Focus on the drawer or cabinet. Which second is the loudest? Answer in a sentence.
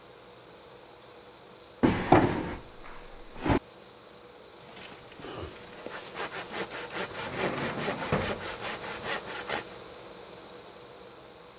The volume of the drawer or cabinet peaks at 2 seconds.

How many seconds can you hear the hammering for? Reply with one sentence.
The hammering can't be heard in this clip.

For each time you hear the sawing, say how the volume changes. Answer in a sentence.
You can hear the sawing from 4.6 to 9.8 s, getting louder.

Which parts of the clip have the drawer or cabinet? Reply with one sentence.
The drawer or cabinet can be heard from 1.8 to 3.6 s and from 7.1 to 9.1 s.